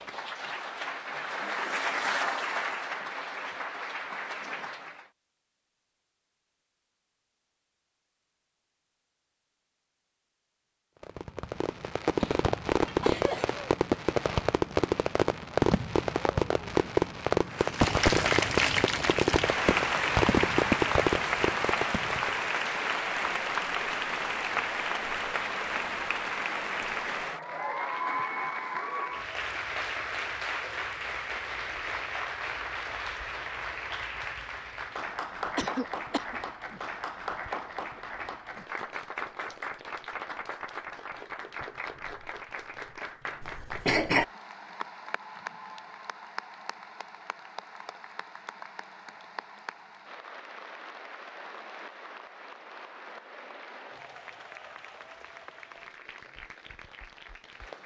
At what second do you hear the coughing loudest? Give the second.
44 s.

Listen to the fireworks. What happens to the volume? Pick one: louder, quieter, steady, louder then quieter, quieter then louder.
steady.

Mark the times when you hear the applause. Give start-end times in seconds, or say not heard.
0.0-5.1, 17.4-57.8.